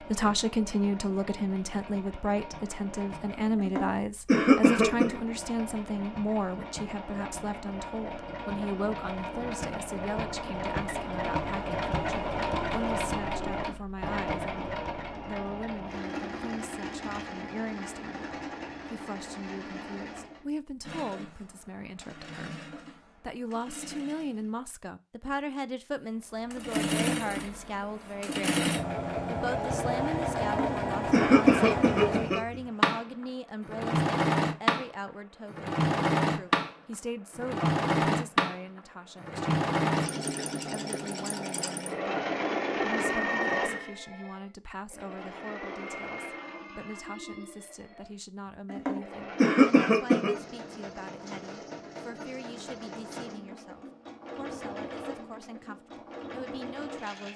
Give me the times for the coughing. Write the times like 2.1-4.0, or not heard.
3.6-5.2, 30.4-32.4, 48.7-50.3.